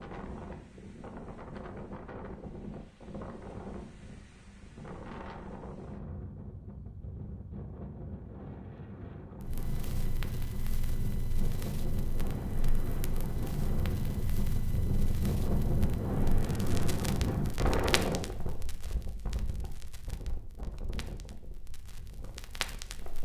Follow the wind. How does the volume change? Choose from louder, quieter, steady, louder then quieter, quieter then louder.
louder then quieter.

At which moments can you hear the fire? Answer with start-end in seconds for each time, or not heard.
9.4-23.1.